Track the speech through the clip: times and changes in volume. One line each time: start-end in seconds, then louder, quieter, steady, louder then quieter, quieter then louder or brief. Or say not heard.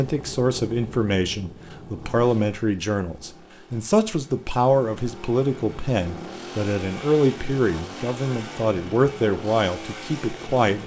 0.0-10.8 steady.